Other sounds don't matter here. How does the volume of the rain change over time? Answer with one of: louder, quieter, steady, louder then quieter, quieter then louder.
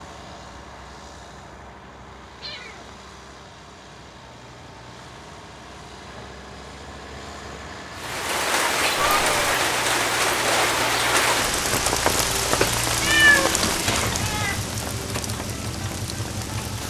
quieter.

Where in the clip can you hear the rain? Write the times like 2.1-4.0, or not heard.
8.0-16.8.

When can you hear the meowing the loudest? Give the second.
13 s.